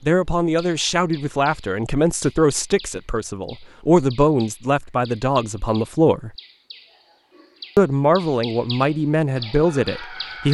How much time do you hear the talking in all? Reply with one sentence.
The talking can be heard for 9 seconds in total.